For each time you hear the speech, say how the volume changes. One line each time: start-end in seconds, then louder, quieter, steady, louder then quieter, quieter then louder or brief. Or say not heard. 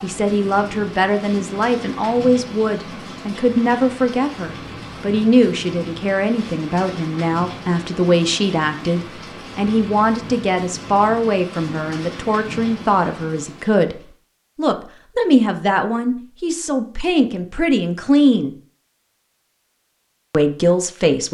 0.0-18.6 steady
20.3-21.2 brief.